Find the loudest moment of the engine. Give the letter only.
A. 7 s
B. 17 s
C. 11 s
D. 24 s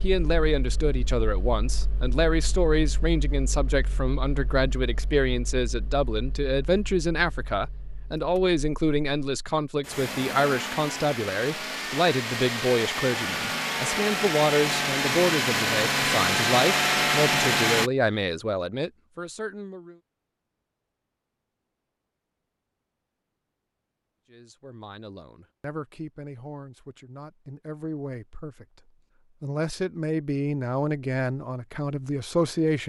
B.